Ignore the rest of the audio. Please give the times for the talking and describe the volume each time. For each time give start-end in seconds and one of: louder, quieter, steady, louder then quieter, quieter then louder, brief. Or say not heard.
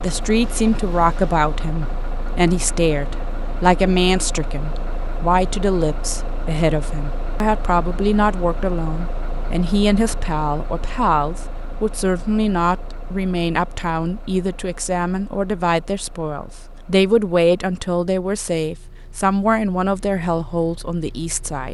0.0-21.6 steady.